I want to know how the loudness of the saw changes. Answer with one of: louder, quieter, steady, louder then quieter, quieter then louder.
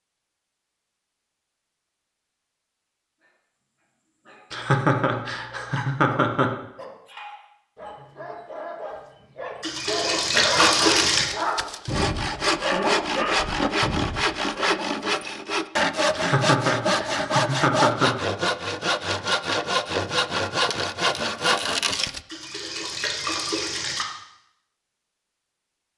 steady.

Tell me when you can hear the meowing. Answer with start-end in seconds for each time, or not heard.
not heard.